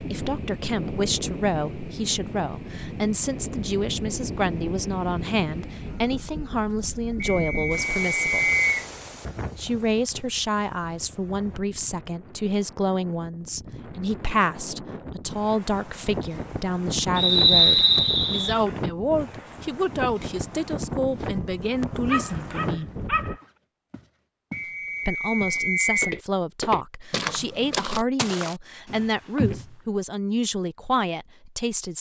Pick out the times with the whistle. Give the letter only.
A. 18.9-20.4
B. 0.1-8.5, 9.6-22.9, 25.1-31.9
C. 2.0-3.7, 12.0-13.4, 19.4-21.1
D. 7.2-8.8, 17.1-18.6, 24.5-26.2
D.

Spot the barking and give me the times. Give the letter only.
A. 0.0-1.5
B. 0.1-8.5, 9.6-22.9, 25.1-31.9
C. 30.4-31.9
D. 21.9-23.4
D.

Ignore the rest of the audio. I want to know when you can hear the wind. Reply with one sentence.
You can hear the wind from 0.0 to 23.4 s.